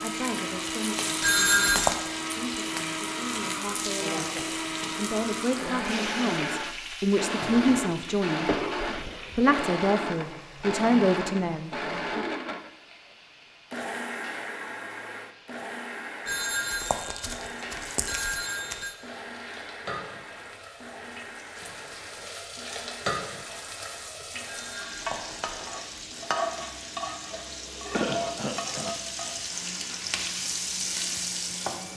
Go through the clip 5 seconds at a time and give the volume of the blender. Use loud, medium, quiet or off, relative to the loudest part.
loud, loud, loud, medium, quiet, quiet, quiet.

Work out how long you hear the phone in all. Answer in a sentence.
The phone can be heard for 5 seconds in total.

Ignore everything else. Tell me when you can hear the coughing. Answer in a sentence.
The coughing can be heard from 7.4 to 9.5 s and from 27.9 to 28.9 s.